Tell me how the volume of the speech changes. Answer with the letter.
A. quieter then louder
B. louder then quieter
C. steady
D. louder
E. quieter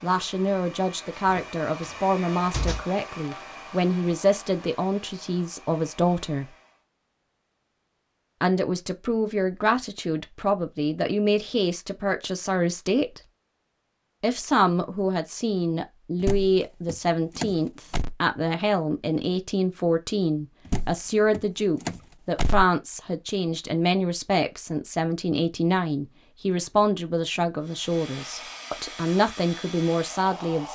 C.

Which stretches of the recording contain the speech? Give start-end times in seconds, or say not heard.
0.0-6.5, 8.4-13.2, 14.2-30.7.